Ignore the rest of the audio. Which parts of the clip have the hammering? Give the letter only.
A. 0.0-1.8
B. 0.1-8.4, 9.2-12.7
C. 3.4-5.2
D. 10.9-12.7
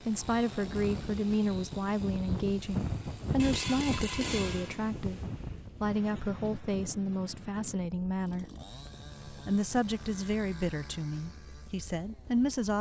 C.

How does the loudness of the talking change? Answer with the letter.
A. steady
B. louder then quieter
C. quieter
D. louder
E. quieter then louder
A.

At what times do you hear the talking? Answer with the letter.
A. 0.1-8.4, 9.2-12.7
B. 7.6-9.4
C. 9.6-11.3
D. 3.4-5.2
A.